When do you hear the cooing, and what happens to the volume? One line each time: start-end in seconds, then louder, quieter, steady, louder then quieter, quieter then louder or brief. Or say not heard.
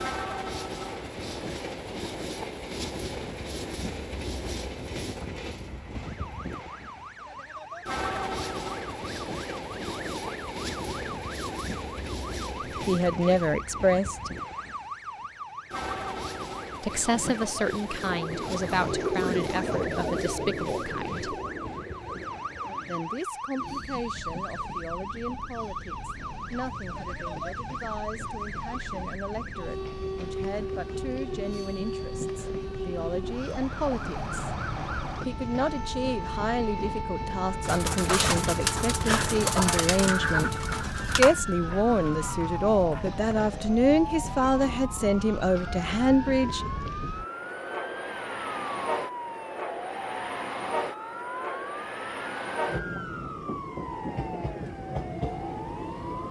17.1-23.2 louder then quieter
37.6-43.5 quieter.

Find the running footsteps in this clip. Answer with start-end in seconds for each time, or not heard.
not heard.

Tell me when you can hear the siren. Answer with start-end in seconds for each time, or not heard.
6.0-56.2.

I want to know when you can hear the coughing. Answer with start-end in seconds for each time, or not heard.
not heard.